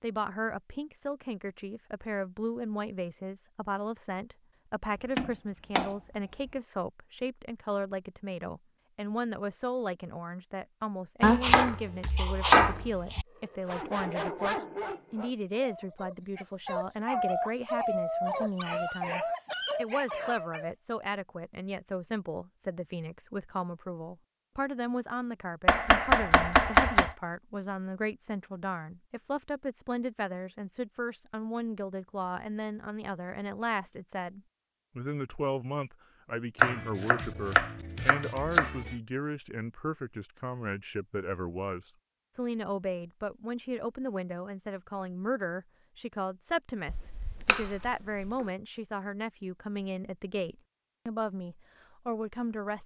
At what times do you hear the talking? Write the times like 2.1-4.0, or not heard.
0.0-52.8.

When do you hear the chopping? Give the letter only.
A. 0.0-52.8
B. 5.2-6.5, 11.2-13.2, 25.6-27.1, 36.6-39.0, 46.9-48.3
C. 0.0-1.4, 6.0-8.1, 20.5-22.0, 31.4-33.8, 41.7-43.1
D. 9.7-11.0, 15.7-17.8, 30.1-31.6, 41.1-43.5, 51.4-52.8
B.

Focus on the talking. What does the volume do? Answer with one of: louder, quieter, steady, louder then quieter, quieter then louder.
steady.